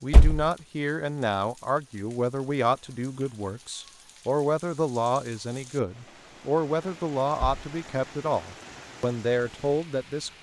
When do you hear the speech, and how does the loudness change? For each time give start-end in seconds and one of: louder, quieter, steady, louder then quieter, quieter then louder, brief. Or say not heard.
0.0-10.3 steady.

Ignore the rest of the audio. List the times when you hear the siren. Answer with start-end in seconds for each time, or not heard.
not heard.